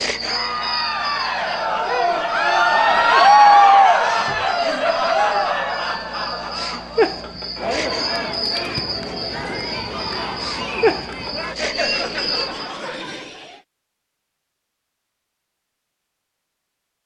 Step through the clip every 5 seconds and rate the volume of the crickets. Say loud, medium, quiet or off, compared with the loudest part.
medium, loud, loud, off.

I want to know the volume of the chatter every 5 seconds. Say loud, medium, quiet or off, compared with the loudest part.
loud, medium, quiet, off.